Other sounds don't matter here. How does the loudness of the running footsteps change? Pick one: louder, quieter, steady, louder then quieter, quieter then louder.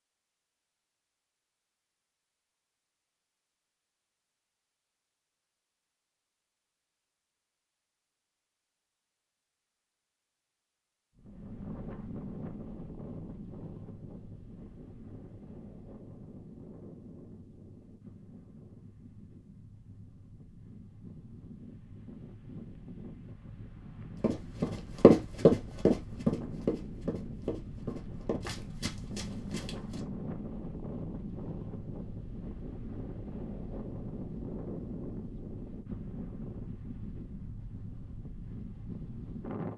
quieter.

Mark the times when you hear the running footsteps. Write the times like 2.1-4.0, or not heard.
24.2-30.0.